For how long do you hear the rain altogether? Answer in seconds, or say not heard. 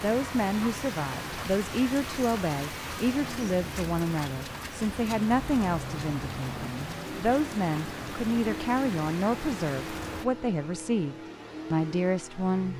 10 s.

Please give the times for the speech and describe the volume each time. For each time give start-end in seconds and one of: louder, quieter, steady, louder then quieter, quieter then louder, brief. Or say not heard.
0.0-12.7 steady.